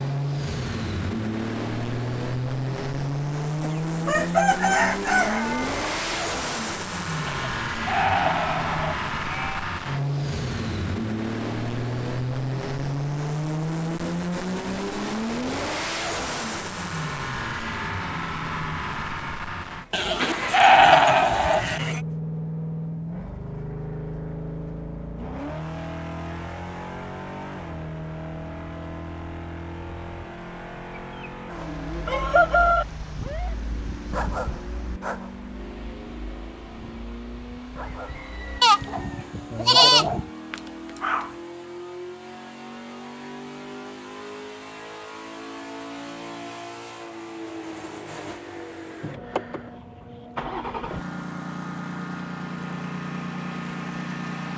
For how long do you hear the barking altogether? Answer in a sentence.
The barking can be heard for 10 seconds in total.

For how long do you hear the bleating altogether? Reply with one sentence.
The bleating can be heard for 6 seconds in total.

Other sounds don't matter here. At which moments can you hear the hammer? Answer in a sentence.
You can't hear the hammer here.